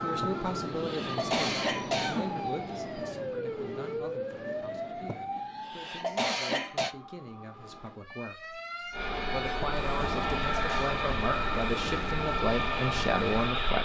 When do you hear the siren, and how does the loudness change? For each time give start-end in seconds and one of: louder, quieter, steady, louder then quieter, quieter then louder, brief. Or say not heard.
0.0-13.8 quieter then louder.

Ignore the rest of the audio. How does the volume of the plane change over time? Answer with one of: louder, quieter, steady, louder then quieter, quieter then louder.
steady.